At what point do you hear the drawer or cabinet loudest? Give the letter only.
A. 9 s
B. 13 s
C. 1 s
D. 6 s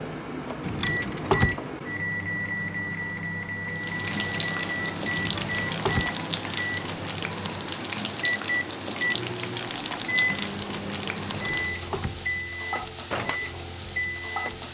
C.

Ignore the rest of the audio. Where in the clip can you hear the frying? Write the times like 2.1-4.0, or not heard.
3.6-14.7.